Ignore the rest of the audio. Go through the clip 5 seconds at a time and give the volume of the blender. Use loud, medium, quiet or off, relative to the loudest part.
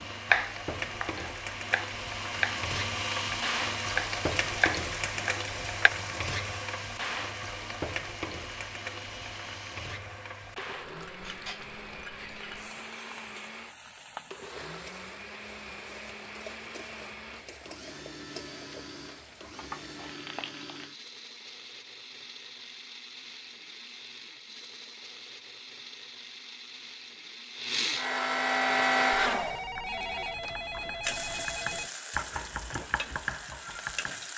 medium, quiet, quiet, quiet, quiet, loud, off.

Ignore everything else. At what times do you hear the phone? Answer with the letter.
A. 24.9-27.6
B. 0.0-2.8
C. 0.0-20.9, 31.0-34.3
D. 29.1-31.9
D.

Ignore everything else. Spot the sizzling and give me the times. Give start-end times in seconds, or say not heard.
0.0-20.9, 31.0-34.3.